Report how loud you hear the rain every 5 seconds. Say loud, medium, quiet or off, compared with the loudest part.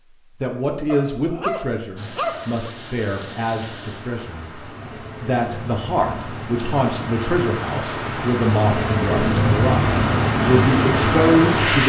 quiet, medium, loud.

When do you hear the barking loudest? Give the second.
2 s.